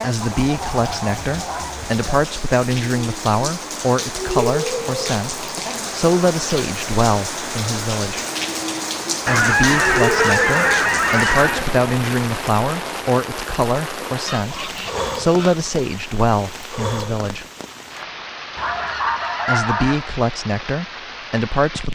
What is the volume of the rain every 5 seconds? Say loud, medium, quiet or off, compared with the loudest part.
loud, loud, loud, medium, medium.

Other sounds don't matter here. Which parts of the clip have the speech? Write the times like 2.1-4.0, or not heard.
0.0-8.2, 9.2-17.4, 19.4-21.9.